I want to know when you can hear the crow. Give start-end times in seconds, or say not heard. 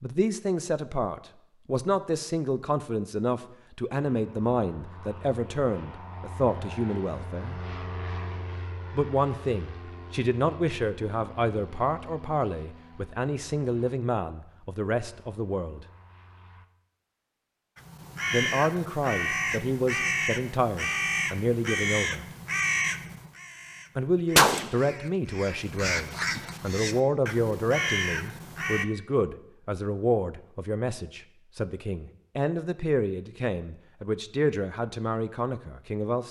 17.8-28.9.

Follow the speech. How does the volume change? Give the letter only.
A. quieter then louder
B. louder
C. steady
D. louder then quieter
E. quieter
C.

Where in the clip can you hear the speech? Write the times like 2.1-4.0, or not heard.
0.0-7.6, 8.9-15.8, 18.3-22.2, 23.9-36.2.